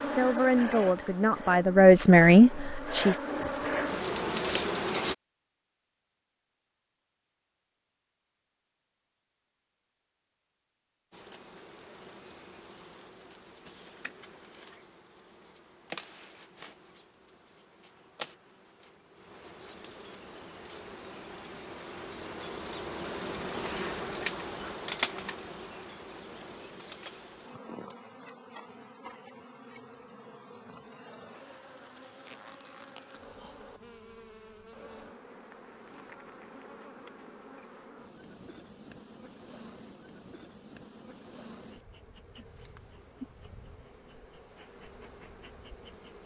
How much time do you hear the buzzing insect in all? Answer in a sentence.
The buzzing insect can be heard for 40 seconds in total.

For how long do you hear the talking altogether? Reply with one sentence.
The talking can be heard for 3 seconds in total.